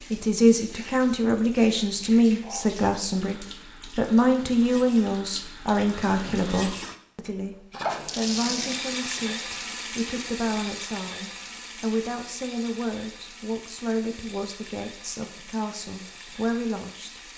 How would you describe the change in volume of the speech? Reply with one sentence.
The loudness of the speech goes down.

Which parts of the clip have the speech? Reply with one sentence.
The speech can be heard from 0.1 to 17.2 s.